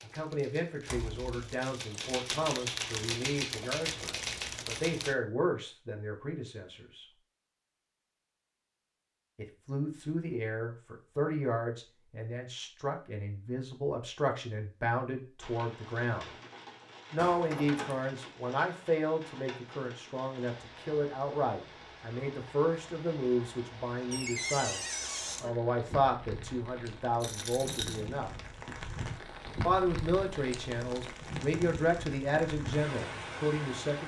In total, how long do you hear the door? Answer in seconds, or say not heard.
3 s.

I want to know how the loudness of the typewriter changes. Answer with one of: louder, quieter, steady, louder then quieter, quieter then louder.
louder.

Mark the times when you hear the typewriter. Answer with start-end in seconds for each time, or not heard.
0.0-5.2.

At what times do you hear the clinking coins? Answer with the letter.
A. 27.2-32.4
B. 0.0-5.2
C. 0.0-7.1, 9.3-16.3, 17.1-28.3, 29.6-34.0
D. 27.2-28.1
D.